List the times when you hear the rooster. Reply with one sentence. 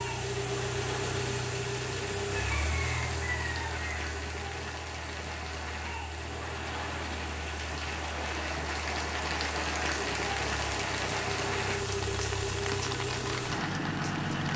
You can hear the rooster from 2.3 to 4.0 s.